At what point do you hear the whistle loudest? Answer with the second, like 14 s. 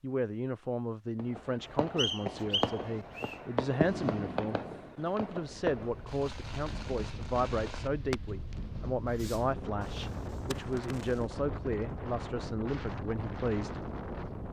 2 s.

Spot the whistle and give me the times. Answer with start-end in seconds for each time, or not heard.
1.9-3.4.